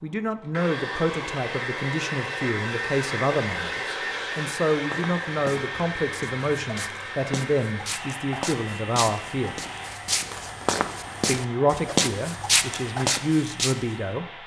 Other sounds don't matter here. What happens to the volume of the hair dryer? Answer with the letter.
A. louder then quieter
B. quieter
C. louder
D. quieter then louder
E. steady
B.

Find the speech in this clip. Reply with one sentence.
The speech can be heard from 0.0 to 9.6 s and from 11.2 to 14.2 s.